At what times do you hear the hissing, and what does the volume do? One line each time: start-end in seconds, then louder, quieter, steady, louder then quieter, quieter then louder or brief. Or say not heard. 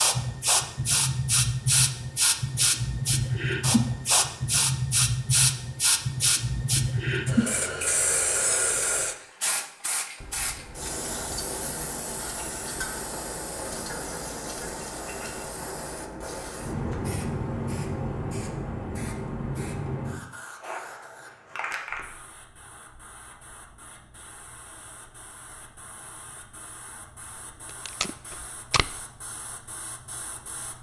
0.0-30.7 quieter.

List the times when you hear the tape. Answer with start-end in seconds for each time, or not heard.
27.6-29.0.